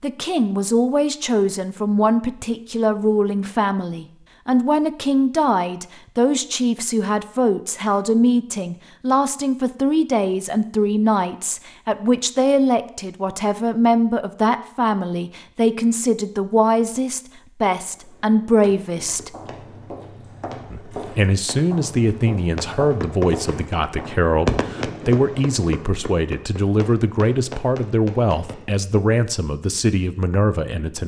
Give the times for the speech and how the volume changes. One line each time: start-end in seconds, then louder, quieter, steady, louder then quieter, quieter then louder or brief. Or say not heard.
0.0-19.3 steady
20.7-31.0 steady.